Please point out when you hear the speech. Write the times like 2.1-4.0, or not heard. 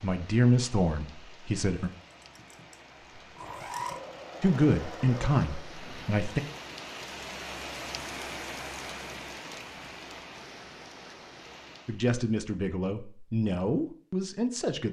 0.0-1.9, 4.4-6.4, 11.8-14.8.